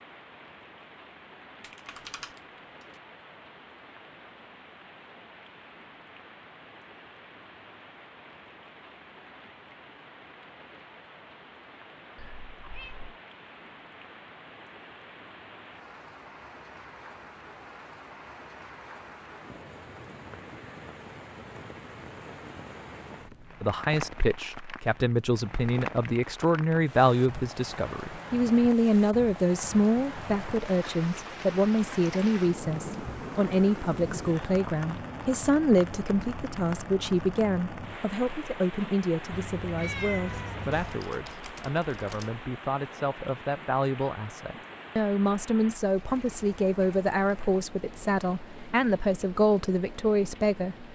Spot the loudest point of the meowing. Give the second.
40 s.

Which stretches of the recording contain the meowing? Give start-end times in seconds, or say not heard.
12.2-13.2, 39.3-41.0.